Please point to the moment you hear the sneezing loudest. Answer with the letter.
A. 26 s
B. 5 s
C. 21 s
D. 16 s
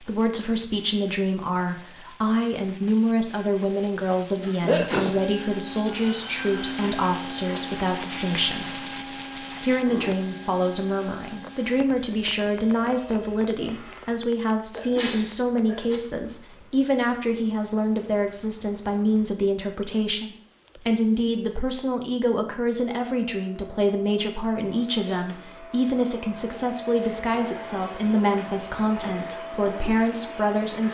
B.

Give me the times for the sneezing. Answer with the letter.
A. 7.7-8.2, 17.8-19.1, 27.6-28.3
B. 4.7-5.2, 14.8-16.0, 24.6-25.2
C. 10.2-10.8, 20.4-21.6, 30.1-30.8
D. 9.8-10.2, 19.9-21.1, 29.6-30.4
B.